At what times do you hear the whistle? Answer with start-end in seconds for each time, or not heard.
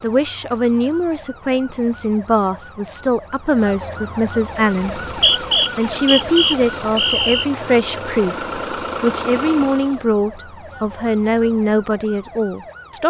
5.0-7.5.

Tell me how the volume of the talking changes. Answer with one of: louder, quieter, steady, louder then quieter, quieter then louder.
steady.